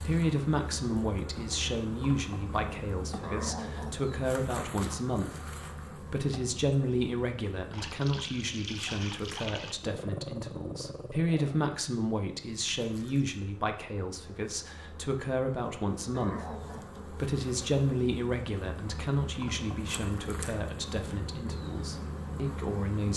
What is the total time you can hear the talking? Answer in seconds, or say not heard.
23 s.